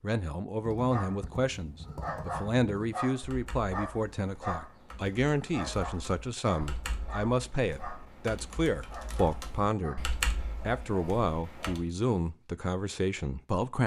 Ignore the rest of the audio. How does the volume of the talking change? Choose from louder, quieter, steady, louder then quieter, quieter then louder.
steady.